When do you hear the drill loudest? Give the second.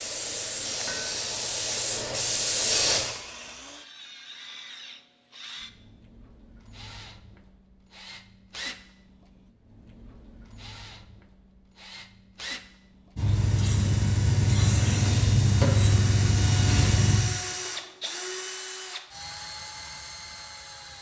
17 s.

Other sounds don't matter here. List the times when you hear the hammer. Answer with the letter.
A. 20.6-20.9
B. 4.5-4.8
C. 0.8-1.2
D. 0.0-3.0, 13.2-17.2
C.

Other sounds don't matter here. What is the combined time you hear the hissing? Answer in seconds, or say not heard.
7 s.